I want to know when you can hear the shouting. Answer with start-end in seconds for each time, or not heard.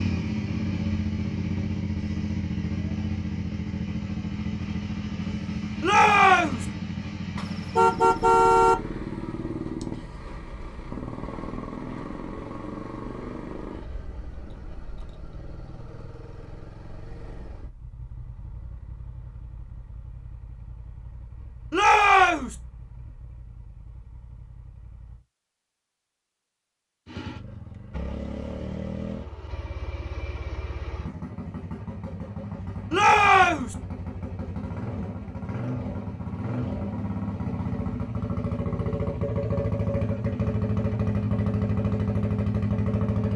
5.8-6.7, 21.7-22.6, 32.9-33.8.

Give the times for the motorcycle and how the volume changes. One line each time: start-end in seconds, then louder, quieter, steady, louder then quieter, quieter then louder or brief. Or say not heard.
0.0-25.2 quieter
27.1-43.3 louder.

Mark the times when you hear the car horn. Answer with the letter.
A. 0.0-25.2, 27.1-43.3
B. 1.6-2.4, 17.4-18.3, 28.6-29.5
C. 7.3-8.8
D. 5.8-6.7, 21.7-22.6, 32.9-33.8
C.